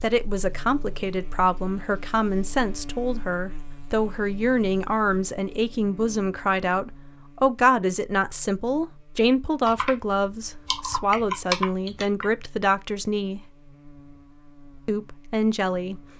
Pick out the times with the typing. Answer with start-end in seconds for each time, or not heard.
9.7-12.2.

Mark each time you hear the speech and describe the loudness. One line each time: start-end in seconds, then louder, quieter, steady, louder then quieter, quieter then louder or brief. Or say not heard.
0.0-13.4 steady
14.8-16.0 brief.